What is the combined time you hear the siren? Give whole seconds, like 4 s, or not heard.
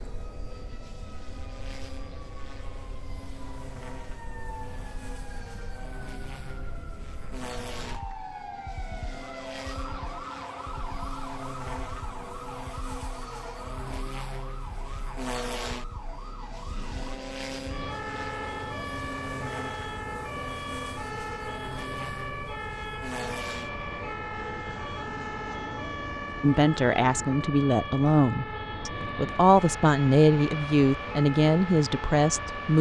33 s.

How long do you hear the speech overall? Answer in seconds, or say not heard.
6 s.